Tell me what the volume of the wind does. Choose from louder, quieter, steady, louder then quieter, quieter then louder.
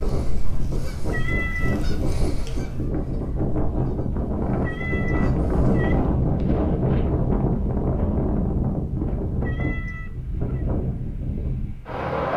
louder then quieter.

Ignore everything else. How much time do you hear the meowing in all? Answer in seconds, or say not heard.
3 s.